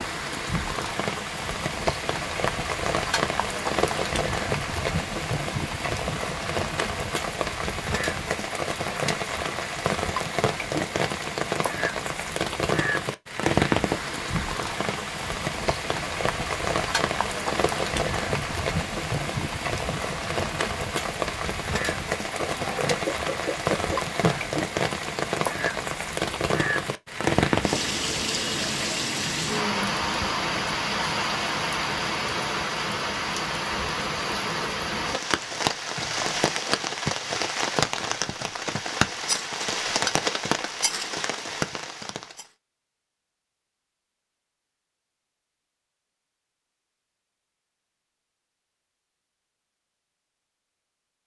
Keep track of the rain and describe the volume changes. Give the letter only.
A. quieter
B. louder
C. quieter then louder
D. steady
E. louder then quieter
D.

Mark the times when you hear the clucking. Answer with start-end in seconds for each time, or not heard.
22.4-24.4.